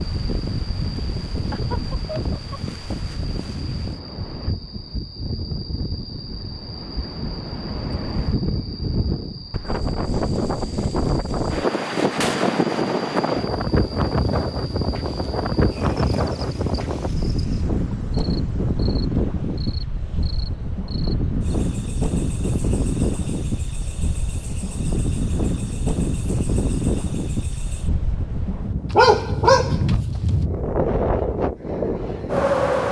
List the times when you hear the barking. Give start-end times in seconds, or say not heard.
28.9-30.4.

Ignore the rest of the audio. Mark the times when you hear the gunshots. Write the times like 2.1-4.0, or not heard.
12.2-12.6.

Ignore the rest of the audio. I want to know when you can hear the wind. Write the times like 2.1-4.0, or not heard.
0.0-32.8.